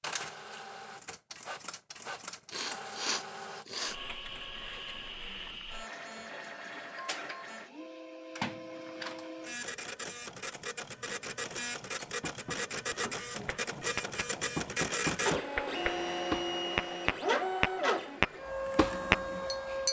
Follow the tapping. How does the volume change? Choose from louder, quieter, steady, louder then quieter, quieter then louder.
louder.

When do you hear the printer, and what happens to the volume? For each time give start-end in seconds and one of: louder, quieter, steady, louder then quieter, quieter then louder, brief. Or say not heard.
0.0-19.8 louder.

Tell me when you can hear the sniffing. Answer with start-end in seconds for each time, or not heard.
2.5-4.0.